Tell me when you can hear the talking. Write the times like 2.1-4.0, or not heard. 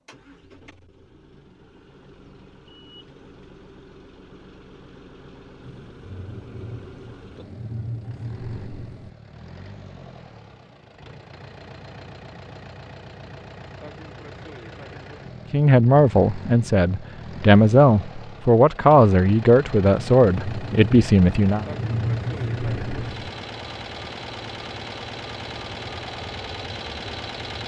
15.5-21.6.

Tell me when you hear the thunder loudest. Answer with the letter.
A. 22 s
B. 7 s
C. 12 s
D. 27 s
A.